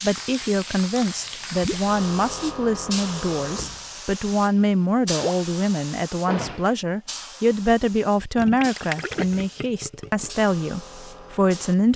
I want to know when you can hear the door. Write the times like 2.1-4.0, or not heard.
3.5-4.0, 6.2-6.8.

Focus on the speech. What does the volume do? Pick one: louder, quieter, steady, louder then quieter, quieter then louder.
steady.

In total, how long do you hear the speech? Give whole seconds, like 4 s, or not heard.
12 s.